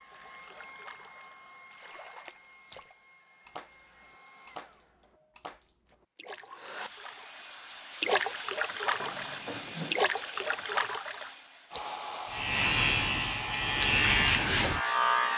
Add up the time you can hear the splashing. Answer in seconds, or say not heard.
12 s.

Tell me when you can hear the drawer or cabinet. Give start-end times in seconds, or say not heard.
8.9-9.9.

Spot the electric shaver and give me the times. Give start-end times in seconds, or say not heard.
12.3-15.3.